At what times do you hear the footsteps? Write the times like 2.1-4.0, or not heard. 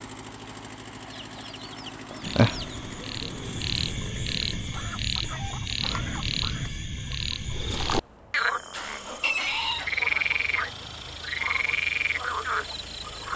not heard.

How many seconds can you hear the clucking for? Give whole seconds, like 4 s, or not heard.
6 s.